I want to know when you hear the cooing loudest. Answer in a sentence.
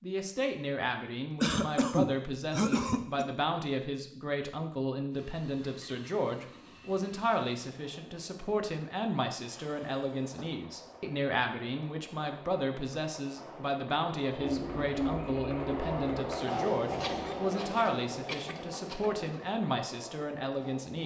The loudest moment of the cooing is at 15 seconds.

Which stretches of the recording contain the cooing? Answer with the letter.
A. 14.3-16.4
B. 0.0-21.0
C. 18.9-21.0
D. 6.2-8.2
A.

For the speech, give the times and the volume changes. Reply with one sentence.
The speech can be heard from 0.0 to 21.0 s, at a steady volume.